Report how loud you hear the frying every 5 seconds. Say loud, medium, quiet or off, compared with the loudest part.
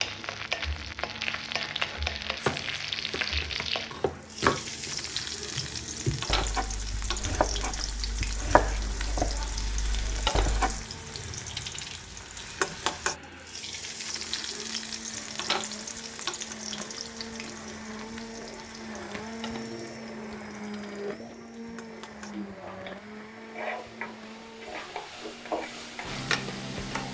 loud, loud, loud, medium, medium, loud.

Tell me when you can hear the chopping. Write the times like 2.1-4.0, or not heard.
1.9-10.8.